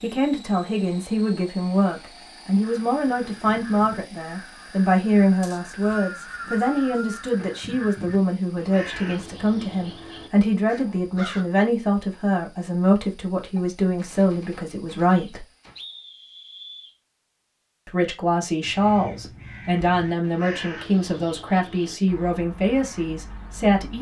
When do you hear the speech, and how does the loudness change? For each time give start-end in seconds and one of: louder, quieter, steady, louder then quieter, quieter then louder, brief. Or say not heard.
0.0-15.4 steady
17.9-23.9 steady.